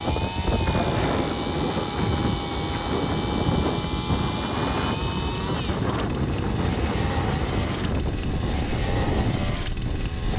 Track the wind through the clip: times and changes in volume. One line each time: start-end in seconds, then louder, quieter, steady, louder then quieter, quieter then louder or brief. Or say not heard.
0.0-10.3 steady.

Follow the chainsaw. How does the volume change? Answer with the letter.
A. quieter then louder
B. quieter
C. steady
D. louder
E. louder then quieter
C.